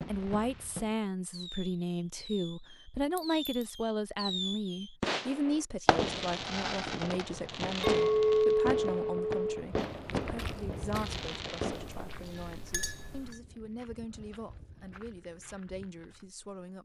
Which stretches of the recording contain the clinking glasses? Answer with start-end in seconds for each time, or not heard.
3.1-3.6, 7.8-9.4, 11.8-13.3.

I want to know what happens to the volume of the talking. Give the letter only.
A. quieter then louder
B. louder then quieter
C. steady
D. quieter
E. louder
D.